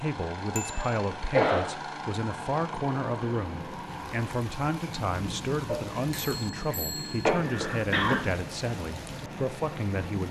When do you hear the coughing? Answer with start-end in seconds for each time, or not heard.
0.6-1.6, 7.2-8.2.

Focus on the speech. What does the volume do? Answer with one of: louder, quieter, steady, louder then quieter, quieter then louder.
steady.